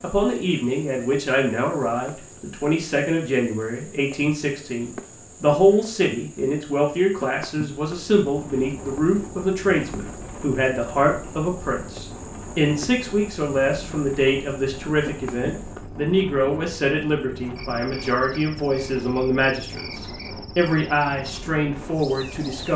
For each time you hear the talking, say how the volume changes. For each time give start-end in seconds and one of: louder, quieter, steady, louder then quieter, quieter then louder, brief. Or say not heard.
0.0-22.7 steady.